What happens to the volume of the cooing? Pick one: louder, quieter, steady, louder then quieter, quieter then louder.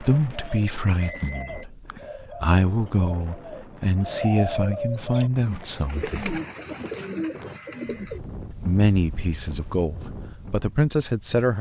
louder.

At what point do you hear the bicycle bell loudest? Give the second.
1 s.